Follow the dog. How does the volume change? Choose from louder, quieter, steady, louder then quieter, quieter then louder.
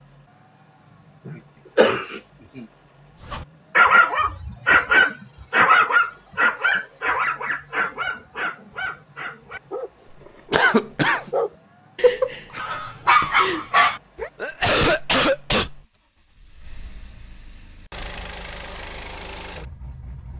quieter then louder.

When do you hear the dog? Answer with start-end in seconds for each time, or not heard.
3.3-14.3.